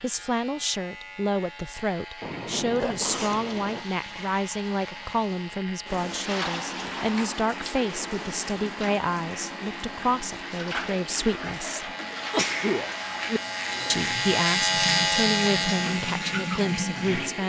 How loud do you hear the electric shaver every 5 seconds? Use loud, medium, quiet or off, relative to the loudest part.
quiet, quiet, loud, loud.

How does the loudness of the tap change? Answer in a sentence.
The volume of the tap goes up.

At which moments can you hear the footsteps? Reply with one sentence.
You can't hear the footsteps here.